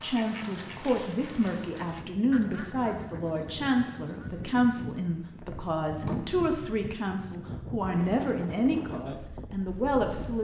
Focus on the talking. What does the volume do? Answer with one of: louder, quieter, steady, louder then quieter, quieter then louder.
steady.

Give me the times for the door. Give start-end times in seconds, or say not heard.
5.4-6.3.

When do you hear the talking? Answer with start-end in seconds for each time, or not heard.
0.0-10.3.